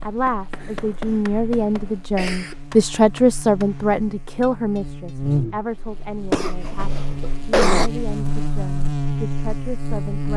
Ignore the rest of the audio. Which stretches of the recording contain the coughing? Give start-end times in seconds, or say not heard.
0.6-2.5, 5.2-7.9.